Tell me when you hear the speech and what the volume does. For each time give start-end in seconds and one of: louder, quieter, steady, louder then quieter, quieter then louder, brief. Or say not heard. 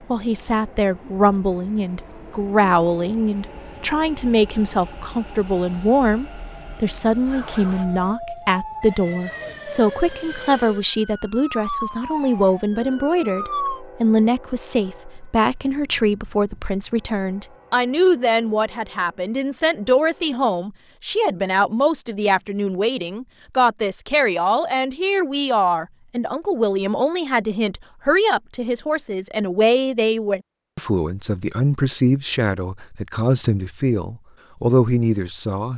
0.1-35.7 steady.